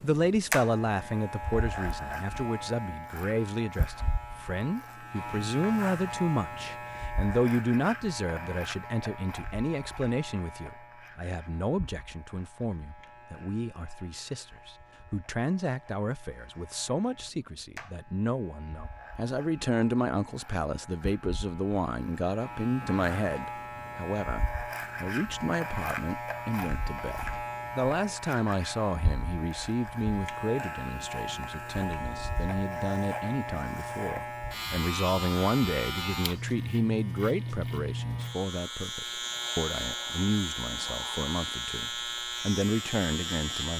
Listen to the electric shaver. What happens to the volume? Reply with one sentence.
The loudness of the electric shaver goes down, then up.